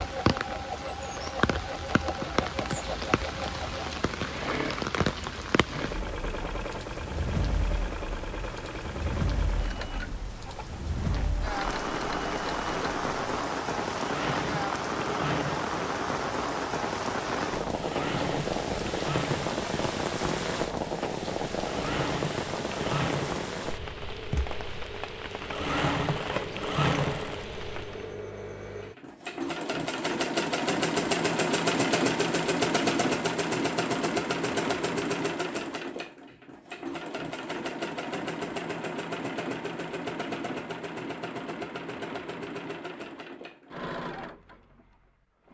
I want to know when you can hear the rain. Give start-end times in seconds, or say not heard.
0.0-28.2.